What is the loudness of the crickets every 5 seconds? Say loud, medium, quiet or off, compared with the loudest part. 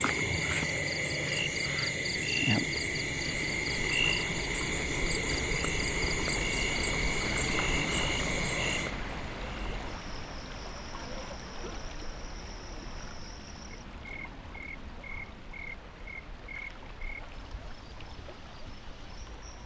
loud, loud, quiet, quiet.